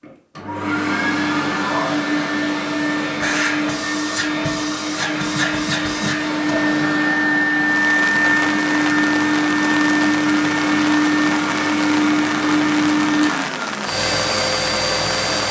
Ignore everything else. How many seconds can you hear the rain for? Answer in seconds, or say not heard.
8 s.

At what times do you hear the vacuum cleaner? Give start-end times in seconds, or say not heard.
0.0-15.4.